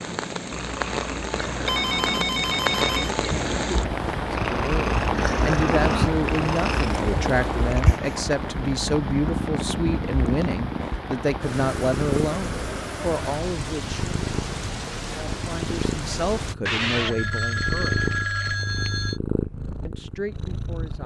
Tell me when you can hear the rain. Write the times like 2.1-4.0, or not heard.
0.0-16.6.